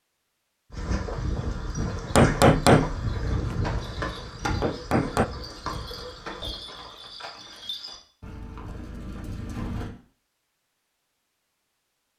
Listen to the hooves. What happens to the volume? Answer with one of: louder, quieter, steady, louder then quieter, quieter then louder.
quieter.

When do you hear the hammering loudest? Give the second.
3 s.